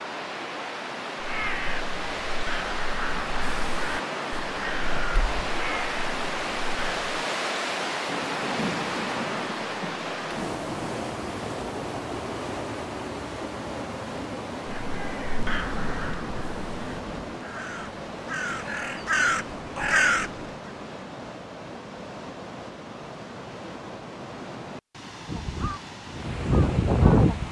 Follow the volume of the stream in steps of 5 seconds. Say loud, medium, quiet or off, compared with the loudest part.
loud, loud, loud, medium, medium, medium.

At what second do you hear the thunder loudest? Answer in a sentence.
The loudest moment of the thunder is at 9 seconds.